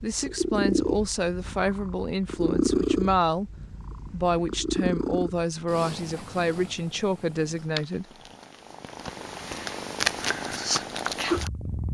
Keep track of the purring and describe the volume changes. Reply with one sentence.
The loudness of the purring goes down, then up.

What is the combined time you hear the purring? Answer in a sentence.
You can hear the purring for 12 seconds altogether.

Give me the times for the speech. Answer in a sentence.
The speech can be heard from 0.0 to 3.5 s and from 4.1 to 8.1 s.